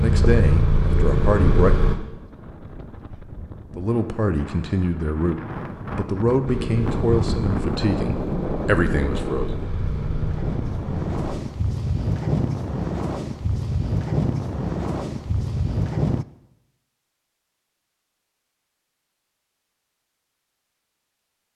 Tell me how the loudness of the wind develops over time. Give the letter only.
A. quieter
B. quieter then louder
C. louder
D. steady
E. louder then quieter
C.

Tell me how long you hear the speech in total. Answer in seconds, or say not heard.
8 s.